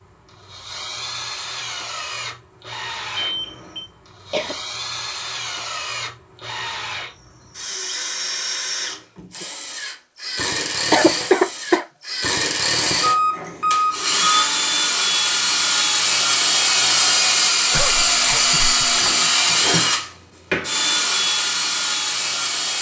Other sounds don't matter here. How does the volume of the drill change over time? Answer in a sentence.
The volume of the drill goes up.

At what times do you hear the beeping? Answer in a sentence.
You can hear the beeping from 3.1 to 3.9 s and from 13.0 to 14.2 s.